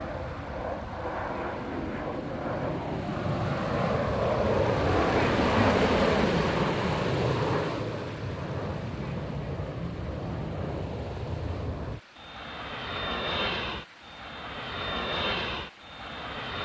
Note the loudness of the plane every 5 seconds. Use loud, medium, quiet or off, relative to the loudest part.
loud, loud, medium, medium.